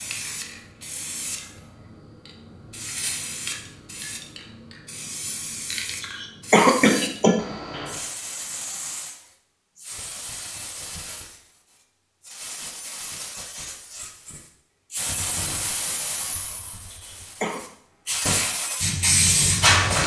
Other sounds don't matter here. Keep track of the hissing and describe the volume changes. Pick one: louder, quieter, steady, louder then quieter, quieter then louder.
louder.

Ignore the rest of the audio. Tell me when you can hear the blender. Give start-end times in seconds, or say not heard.
not heard.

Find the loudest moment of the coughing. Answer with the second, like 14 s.
7 s.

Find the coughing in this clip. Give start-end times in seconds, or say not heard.
6.0-7.5, 16.9-17.6.